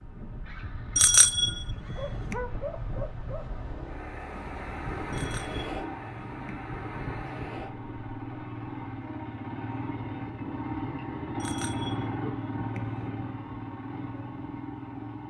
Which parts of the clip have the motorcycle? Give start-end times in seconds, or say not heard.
0.2-15.2.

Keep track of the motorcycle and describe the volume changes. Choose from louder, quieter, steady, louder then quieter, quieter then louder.
louder.